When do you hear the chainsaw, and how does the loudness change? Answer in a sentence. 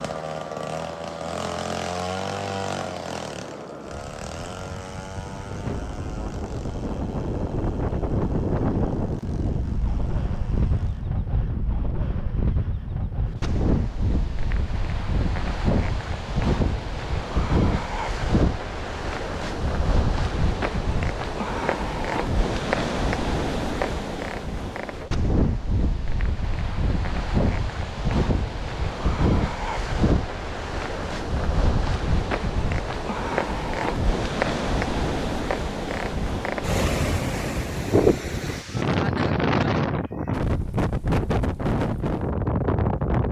You can hear the chainsaw from 0.0 to 11.1 s, getting quieter.